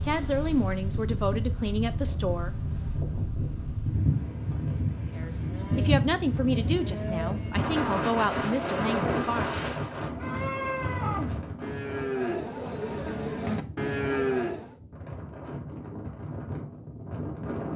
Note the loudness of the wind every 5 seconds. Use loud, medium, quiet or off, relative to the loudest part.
loud, loud, medium, medium.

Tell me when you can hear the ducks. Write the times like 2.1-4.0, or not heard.
not heard.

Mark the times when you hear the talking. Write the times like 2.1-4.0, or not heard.
0.0-2.5, 5.2-9.6.